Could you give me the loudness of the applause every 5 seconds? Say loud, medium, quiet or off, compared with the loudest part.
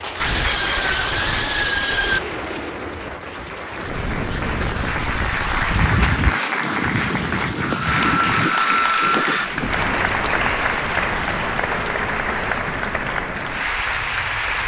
medium, loud, loud.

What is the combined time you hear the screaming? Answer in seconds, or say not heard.
4 s.